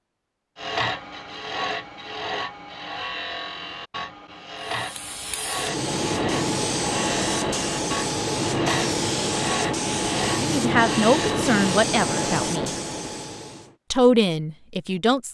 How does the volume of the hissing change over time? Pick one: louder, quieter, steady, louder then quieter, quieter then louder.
steady.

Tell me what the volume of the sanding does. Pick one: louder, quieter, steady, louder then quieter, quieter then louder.
steady.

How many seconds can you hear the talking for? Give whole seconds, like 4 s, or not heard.
4 s.